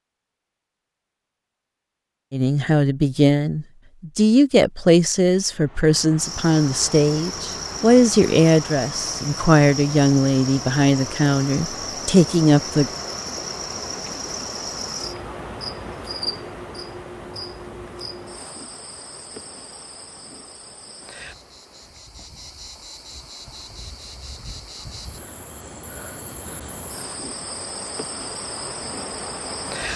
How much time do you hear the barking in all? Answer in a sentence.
The barking can't be heard in this clip.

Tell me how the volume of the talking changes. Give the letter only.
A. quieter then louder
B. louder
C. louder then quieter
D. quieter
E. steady
E.